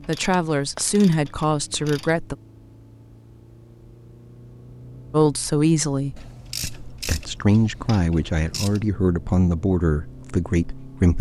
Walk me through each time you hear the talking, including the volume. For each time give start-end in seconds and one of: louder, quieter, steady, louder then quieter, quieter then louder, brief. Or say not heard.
0.1-2.4 brief
5.1-11.1 steady.